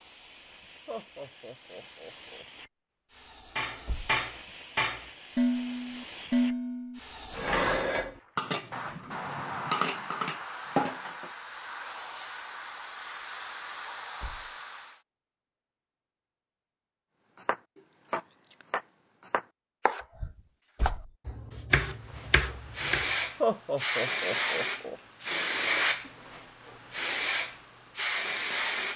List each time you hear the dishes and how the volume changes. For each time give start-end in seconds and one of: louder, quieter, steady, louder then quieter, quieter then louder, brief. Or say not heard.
3.5-11.3 quieter then louder.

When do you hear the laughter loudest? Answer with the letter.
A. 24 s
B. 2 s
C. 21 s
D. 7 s
A.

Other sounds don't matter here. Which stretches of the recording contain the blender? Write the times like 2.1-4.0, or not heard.
not heard.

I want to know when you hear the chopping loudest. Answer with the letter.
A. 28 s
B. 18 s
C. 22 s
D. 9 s
C.